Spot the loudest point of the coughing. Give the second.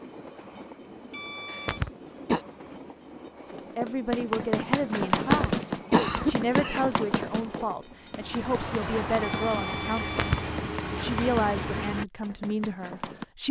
6 s.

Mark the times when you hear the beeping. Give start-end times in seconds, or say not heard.
1.1-1.8, 9.2-10.4.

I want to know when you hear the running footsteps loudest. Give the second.
5 s.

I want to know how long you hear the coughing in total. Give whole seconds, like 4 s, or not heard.
3 s.